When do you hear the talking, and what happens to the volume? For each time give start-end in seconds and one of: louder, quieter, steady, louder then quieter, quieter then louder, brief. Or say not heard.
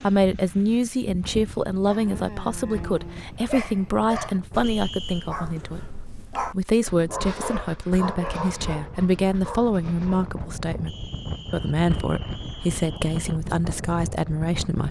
0.0-14.8 steady.